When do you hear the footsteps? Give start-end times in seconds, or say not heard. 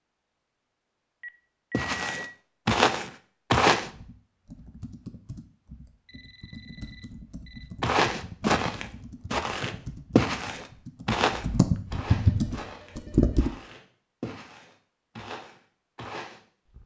1.7-3.9, 7.8-16.8.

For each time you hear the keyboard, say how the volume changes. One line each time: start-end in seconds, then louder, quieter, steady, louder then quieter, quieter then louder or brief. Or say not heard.
3.7-13.5 louder.